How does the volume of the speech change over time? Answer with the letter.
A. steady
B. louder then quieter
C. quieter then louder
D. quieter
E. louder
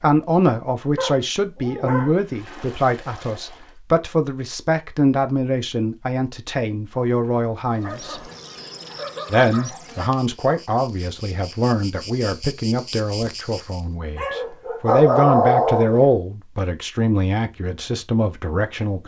A.